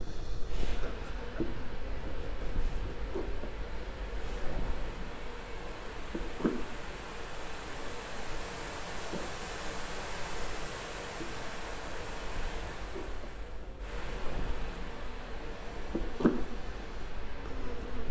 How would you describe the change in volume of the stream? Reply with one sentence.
The loudness of the stream goes up, then down.